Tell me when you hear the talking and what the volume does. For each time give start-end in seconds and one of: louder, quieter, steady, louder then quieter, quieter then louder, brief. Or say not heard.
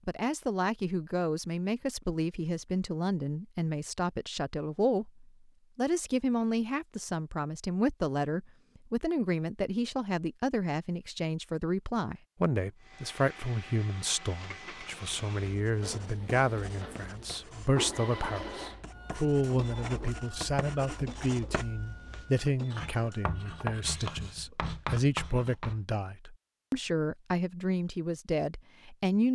0.1-29.3 steady.